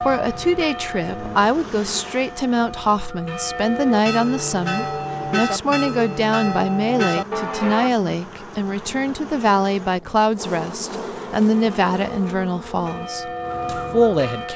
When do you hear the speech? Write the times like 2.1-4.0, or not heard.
0.0-14.5.